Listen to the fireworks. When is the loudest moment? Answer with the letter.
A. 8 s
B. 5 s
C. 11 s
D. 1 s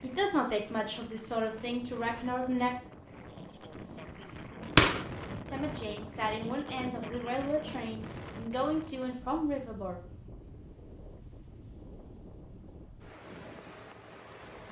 B.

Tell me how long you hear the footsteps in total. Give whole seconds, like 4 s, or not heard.
not heard.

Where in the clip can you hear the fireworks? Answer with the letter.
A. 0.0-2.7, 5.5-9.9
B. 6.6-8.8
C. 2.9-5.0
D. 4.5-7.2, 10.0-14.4
C.